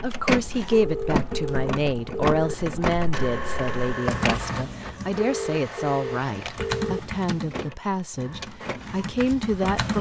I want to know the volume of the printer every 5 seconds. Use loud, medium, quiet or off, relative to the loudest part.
loud, medium.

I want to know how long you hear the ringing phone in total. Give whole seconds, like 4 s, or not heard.
4 s.